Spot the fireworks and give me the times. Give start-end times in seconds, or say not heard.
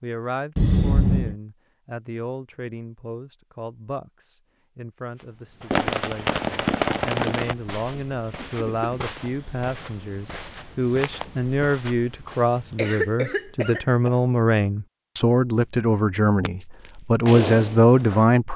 5.7-7.5, 16.4-18.2.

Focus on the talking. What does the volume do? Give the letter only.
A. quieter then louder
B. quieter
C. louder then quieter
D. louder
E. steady
D.